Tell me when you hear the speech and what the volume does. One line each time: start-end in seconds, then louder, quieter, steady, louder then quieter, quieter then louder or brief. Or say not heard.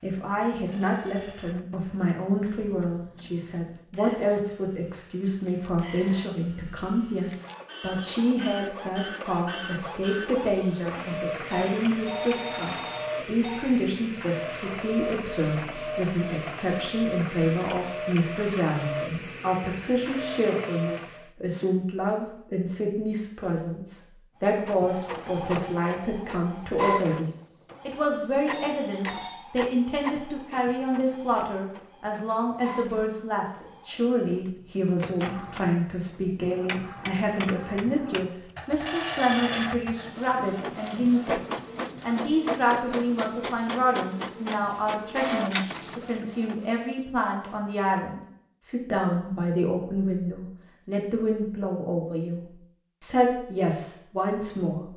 0.0-54.9 steady.